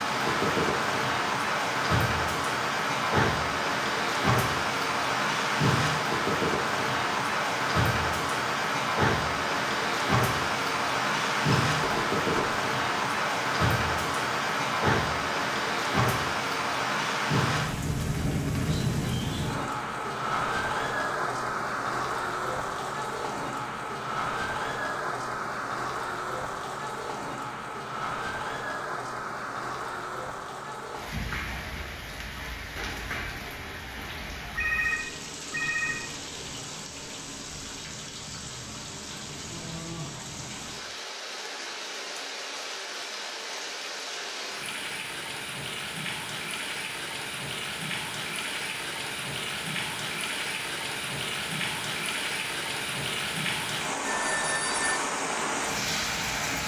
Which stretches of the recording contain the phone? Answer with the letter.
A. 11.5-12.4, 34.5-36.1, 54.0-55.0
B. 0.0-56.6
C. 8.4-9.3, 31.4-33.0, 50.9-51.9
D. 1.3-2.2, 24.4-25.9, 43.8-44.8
A.